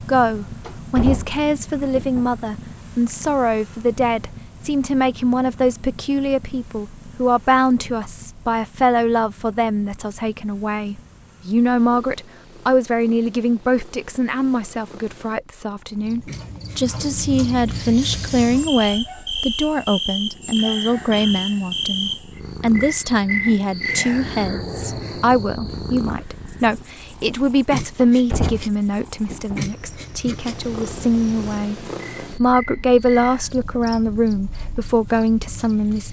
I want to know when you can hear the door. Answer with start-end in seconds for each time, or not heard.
0.7-2.3, 27.9-29.6.